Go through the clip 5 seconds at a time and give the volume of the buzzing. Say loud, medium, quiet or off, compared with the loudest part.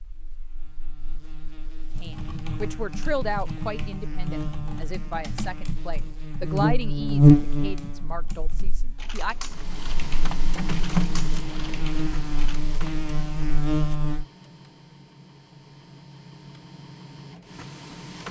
quiet, loud, medium, off.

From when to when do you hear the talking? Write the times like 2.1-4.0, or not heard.
2.0-9.3.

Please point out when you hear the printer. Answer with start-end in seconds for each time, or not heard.
9.4-18.2.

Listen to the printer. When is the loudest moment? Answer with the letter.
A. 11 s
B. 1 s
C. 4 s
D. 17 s
A.